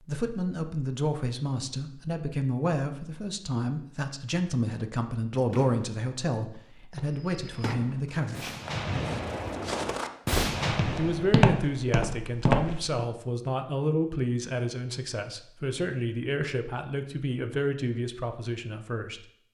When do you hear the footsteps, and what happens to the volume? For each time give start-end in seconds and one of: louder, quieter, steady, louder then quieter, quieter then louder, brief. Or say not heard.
7.0-13.1 louder.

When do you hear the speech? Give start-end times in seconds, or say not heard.
0.0-8.6, 10.9-19.2.